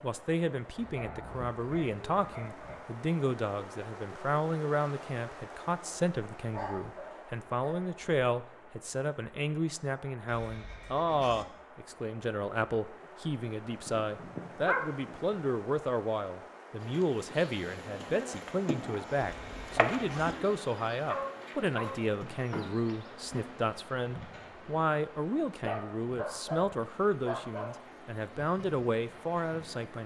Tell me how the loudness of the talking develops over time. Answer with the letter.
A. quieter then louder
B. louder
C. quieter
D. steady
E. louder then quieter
D.